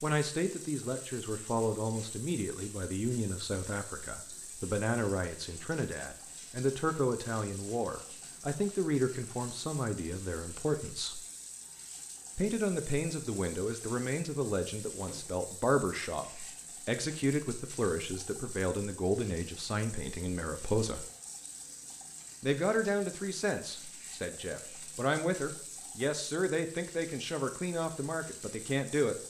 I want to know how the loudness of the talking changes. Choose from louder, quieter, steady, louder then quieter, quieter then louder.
steady.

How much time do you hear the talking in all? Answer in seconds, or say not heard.
27 s.